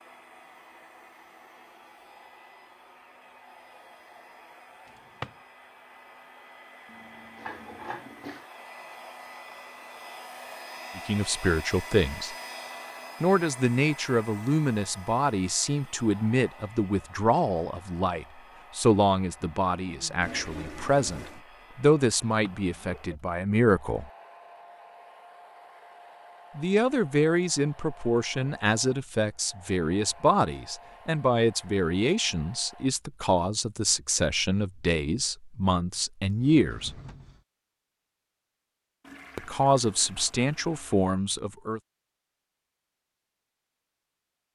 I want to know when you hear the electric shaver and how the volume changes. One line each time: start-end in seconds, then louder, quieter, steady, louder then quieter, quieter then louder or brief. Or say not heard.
not heard.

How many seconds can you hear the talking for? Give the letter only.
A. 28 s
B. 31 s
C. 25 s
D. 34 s
C.